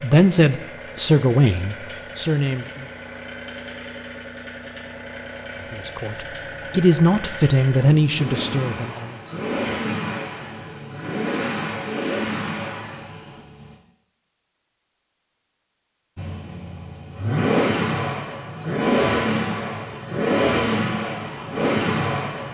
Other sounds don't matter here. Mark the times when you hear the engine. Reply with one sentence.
The engine can be heard from 0.0 to 13.8 s and from 16.1 to 22.4 s.